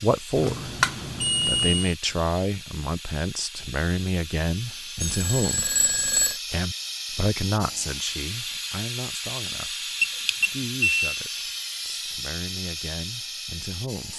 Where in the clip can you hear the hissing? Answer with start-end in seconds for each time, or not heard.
0.0-14.1.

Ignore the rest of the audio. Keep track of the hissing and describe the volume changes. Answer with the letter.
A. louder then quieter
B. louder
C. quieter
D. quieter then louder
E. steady
B.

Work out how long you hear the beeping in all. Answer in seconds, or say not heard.
4 s.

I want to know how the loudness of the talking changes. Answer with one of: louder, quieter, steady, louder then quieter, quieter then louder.
quieter.